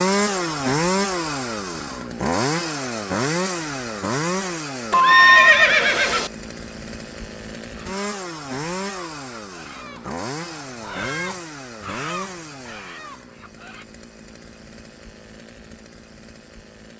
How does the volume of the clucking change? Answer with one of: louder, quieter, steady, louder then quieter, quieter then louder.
louder then quieter.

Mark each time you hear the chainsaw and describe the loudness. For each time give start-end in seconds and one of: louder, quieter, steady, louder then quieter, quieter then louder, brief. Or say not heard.
0.0-16.9 quieter.